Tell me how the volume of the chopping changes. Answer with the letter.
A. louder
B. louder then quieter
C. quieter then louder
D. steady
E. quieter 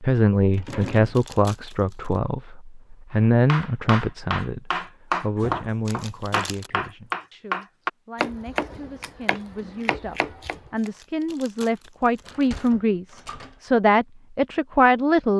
E.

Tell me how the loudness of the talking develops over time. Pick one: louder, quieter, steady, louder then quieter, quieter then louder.
quieter then louder.